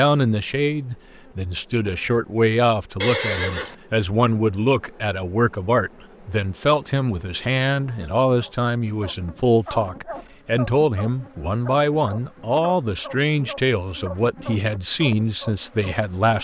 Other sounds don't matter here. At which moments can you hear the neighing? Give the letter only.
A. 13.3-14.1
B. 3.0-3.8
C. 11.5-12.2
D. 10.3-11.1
B.